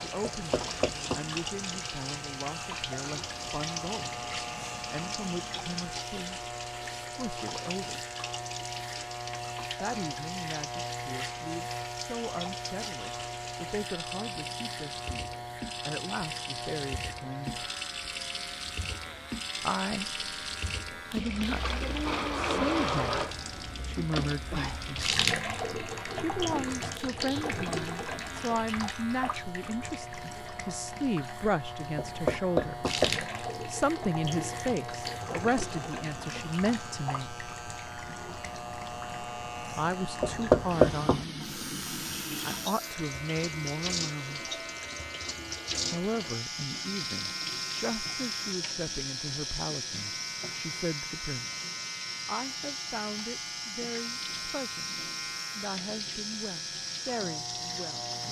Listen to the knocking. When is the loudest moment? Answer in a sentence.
The loudest moment of the knocking is at 41 seconds.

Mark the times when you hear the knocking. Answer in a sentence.
You can hear the knocking from 0.2 to 1.2 s, from 31.9 to 33.2 s and from 40.2 to 41.2 s.